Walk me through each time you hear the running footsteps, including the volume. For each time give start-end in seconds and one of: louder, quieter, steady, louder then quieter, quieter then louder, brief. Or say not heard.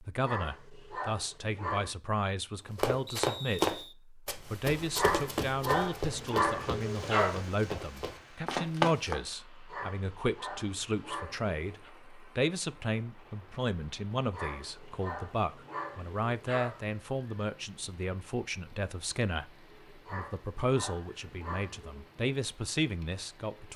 2.8-9.2 quieter then louder.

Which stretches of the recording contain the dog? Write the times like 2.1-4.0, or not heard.
0.2-1.9, 5.0-7.4, 9.7-11.9, 14.3-17.0, 20.1-22.1.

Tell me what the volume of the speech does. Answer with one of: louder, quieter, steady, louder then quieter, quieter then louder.
steady.